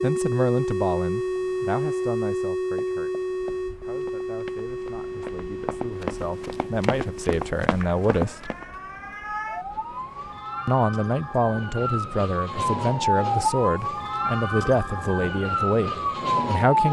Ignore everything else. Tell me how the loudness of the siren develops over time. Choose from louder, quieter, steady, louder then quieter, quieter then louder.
quieter then louder.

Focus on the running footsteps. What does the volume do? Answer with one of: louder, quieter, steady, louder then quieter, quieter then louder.
louder.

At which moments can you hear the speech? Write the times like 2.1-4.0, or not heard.
0.0-8.5, 10.7-16.8.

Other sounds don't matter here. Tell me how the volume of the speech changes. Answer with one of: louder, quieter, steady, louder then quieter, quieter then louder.
quieter then louder.